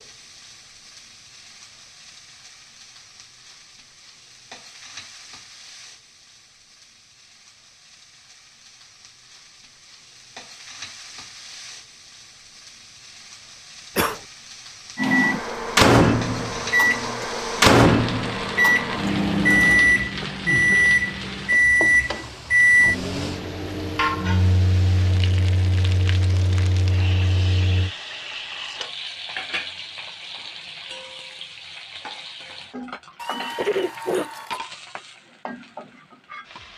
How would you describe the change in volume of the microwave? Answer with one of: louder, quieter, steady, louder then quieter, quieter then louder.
quieter.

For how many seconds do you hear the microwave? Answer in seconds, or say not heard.
13 s.